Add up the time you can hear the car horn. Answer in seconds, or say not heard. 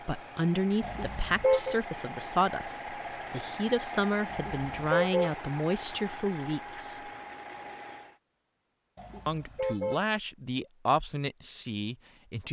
3 s.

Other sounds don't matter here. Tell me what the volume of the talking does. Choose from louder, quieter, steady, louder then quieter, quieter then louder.
steady.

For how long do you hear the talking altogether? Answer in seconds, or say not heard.
10 s.